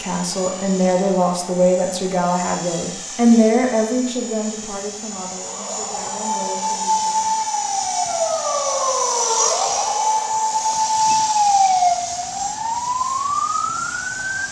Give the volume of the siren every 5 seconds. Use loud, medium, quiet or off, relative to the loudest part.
off, loud, loud.